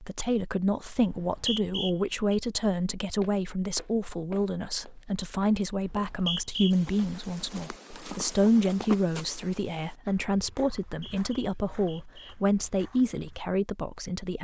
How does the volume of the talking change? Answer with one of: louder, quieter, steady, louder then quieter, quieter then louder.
steady.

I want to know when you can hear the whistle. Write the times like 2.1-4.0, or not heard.
1.1-2.4, 5.8-6.8, 10.8-12.3.